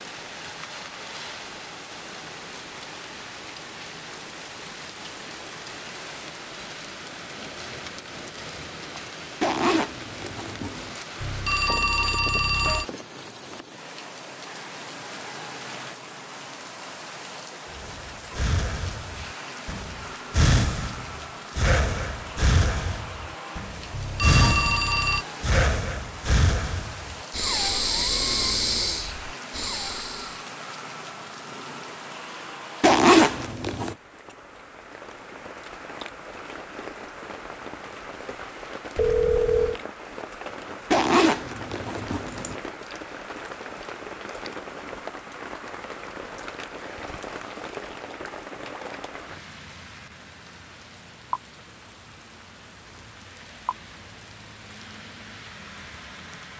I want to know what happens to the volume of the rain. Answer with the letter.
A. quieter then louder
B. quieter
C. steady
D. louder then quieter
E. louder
C.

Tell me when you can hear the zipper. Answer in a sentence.
You can hear the zipper from 9.4 to 11.0 s, from 32.8 to 34.0 s and from 40.9 to 42.5 s.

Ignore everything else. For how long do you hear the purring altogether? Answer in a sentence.
The purring can't be heard in this clip.